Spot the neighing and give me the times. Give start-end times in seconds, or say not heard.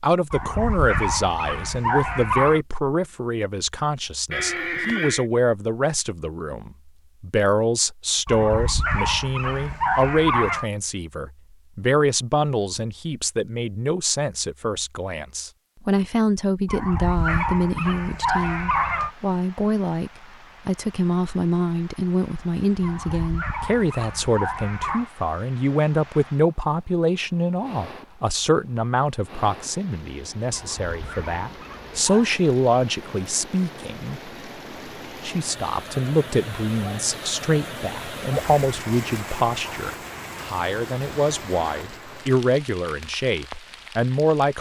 4.3-5.2.